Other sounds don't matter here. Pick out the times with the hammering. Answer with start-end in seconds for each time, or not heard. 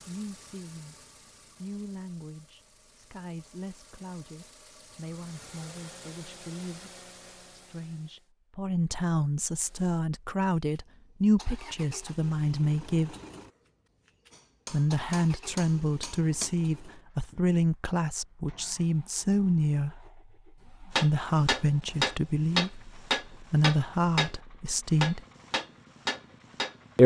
14.3-16.5, 20.9-24.4, 24.9-26.8.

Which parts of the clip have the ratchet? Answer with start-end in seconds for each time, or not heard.
not heard.